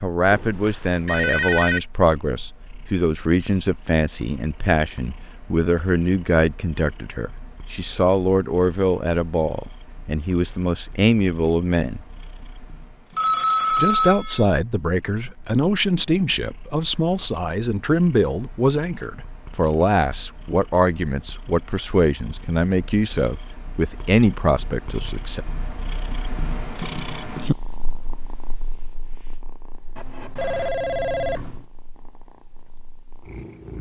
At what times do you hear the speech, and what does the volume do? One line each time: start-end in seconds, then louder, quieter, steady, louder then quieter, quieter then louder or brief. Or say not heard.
0.0-12.0 steady
13.8-25.4 steady.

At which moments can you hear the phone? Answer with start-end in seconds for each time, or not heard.
0.3-1.8, 13.2-14.4, 29.9-31.6.